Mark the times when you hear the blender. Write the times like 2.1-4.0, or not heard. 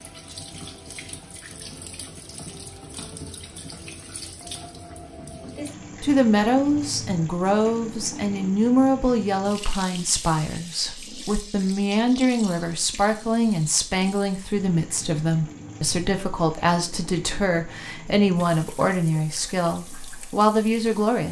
not heard.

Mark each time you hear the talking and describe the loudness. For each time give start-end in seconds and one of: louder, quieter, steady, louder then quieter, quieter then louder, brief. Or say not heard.
6.0-21.2 steady.